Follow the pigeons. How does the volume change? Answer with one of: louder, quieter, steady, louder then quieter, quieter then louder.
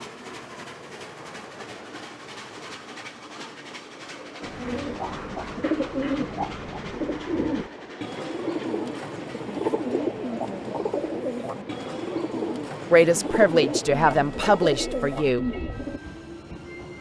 steady.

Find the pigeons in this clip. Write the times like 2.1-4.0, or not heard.
4.4-16.0.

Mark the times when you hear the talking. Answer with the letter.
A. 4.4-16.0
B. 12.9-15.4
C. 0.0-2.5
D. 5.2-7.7
B.